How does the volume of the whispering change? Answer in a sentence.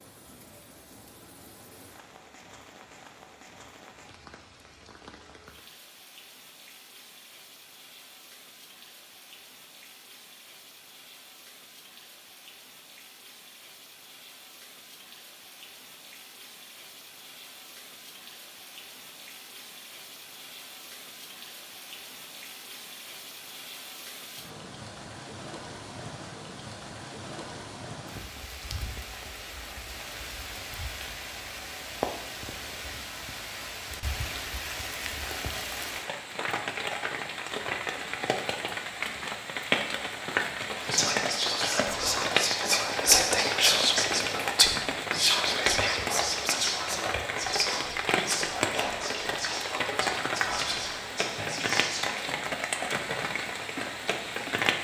The loudness of the whispering goes down.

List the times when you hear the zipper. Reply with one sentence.
You can't hear the zipper here.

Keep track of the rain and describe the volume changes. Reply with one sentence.
The volume of the rain goes up.